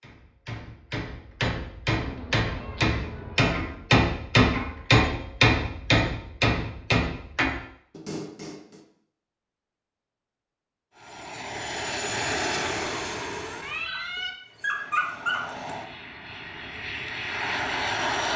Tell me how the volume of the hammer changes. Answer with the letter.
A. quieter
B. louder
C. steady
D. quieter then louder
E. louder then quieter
E.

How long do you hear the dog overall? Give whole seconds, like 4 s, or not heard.
2 s.